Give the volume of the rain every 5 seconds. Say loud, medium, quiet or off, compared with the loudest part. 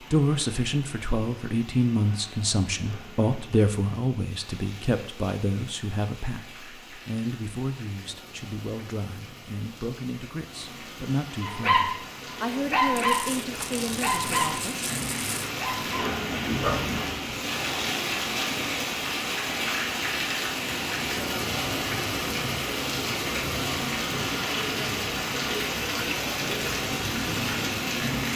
quiet, quiet, medium, loud, loud, loud.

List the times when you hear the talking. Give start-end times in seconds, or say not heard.
0.0-14.9.